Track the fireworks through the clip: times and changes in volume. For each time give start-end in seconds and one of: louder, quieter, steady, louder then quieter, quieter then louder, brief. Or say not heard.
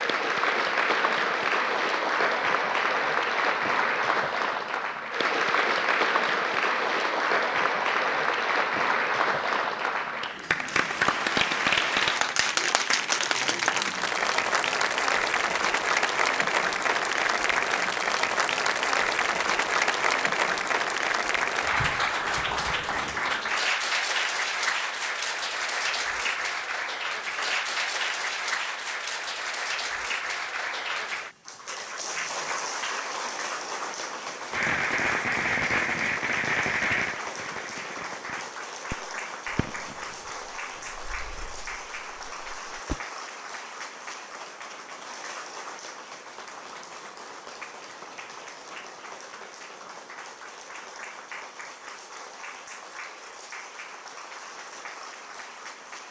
34.5-43.0 quieter.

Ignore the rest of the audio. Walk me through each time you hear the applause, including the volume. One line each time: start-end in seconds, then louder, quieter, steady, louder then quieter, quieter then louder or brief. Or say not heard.
0.0-56.0 quieter.